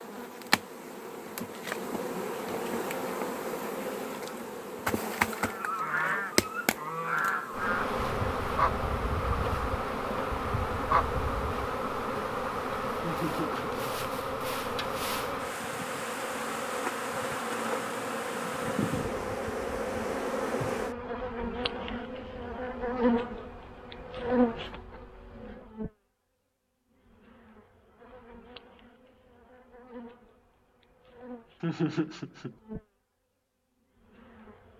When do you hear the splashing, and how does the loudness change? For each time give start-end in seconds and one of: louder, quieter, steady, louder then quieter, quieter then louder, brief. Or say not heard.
not heard.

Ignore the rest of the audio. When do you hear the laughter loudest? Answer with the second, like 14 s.
32 s.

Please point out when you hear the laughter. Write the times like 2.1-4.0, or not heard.
13.0-13.9, 31.6-32.5.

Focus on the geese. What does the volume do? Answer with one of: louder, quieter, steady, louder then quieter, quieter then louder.
quieter then louder.